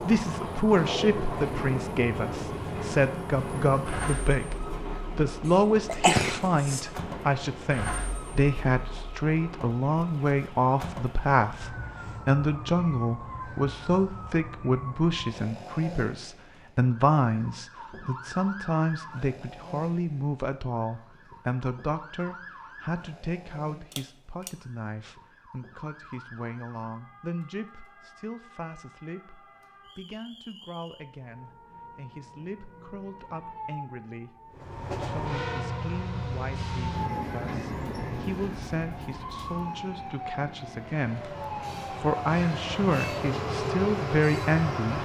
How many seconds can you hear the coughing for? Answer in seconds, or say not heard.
2 s.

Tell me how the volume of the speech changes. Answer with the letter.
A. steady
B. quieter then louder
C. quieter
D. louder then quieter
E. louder
B.